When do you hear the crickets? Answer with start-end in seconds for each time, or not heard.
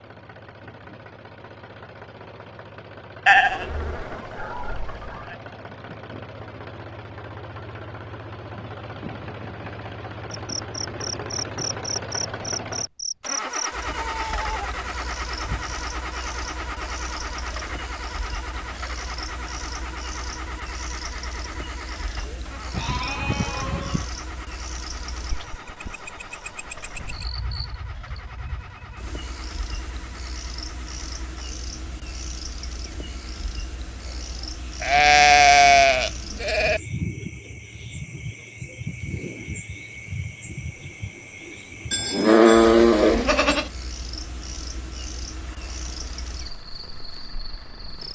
10.3-48.0.